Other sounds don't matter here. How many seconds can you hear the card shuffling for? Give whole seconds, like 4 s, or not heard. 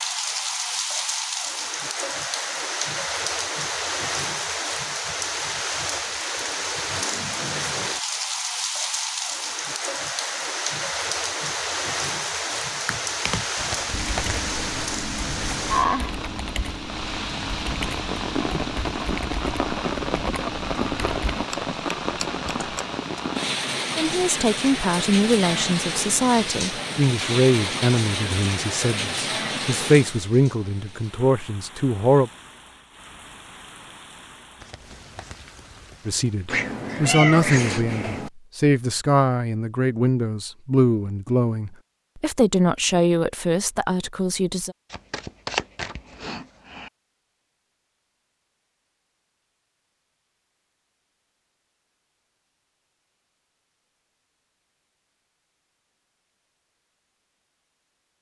4 s.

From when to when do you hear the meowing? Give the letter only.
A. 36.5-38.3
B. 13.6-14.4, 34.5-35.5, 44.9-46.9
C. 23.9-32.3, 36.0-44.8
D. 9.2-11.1
A.